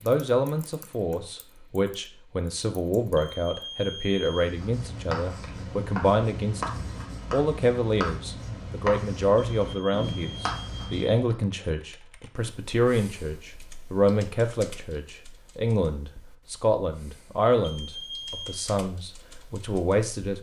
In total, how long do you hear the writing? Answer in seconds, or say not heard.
7 s.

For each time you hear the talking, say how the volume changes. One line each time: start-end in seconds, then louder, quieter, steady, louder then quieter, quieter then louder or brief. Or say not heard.
0.0-20.3 steady.